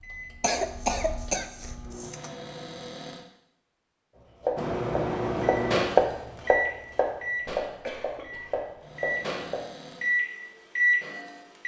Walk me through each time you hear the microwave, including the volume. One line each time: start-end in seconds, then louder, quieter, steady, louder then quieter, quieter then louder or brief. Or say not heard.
0.0-2.1 brief
4.5-11.6 quieter then louder.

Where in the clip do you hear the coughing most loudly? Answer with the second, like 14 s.
1 s.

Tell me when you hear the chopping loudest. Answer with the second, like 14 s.
6 s.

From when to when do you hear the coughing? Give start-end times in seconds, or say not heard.
0.4-2.3, 7.3-8.6.